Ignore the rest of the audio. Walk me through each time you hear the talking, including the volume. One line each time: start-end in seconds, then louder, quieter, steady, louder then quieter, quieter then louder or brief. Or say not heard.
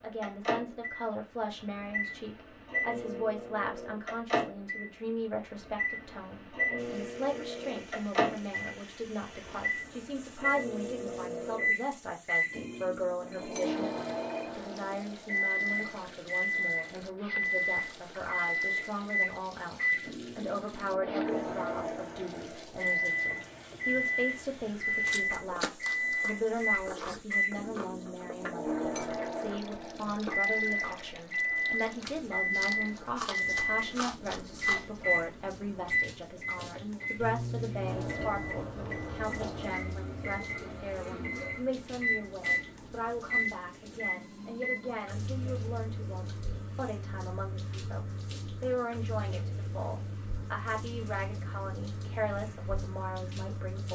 0.0-53.9 steady.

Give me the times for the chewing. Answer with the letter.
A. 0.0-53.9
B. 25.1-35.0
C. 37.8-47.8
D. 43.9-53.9
B.